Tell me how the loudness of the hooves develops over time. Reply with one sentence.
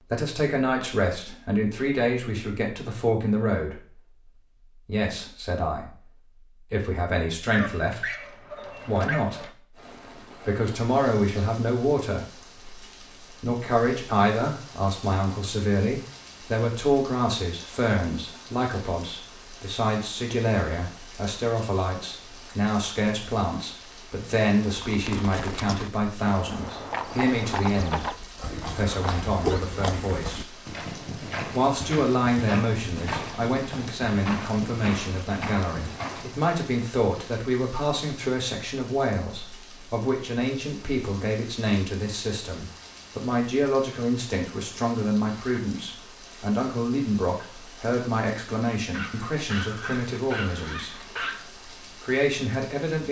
The loudness of the hooves stays about the same.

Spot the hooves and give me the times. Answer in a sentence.
You can hear the hooves from 24.6 to 36.5 s.